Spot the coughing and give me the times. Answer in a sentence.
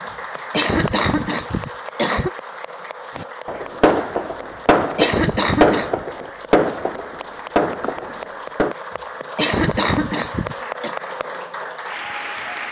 You can hear the coughing from 0.1 to 2.3 s, from 4.5 to 6.0 s and from 8.9 to 10.9 s.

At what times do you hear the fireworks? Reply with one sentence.
You can hear the fireworks from 3.1 to 8.8 s.